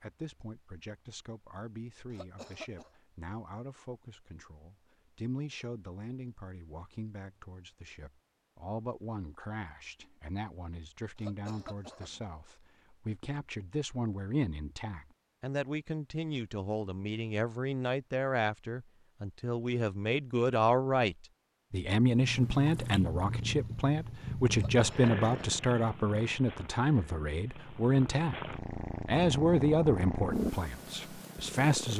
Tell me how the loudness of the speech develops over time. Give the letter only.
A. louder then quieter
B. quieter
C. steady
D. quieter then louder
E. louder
E.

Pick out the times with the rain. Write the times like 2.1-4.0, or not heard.
not heard.